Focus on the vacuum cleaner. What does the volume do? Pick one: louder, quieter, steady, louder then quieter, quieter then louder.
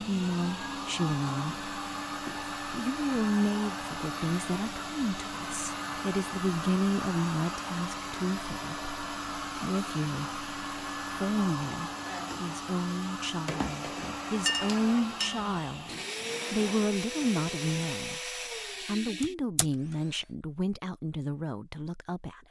steady.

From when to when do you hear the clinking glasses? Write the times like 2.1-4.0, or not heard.
14.4-15.4.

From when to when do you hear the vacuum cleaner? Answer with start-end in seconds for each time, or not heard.
0.0-20.2.